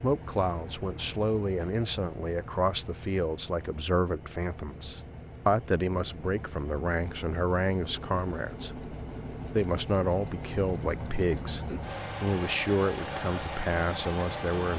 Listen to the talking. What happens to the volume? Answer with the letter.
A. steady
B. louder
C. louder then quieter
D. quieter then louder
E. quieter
A.